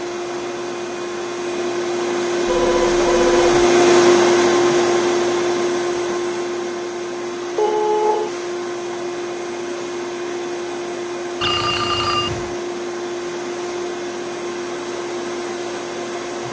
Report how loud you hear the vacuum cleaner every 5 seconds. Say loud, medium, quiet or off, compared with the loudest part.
loud, medium, medium, medium.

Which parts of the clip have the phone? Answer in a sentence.
You can hear the phone from 2.5 to 3.5 s, from 7.5 to 8.3 s and from 11.4 to 12.6 s.